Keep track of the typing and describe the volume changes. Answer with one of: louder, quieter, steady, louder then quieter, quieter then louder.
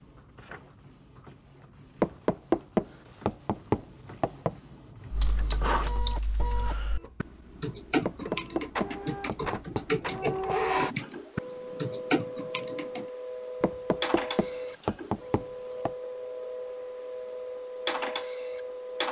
louder.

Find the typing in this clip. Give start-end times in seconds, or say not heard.
5.1-13.1.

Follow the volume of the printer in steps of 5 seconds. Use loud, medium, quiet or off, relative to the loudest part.
quiet, loud, loud, loud.